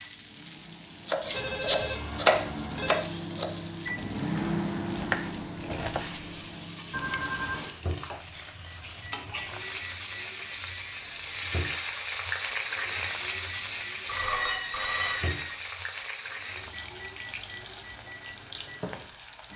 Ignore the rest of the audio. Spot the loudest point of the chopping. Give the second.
2 s.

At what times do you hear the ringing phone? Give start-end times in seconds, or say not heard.
1.3-3.0, 6.9-7.7, 14.1-15.6.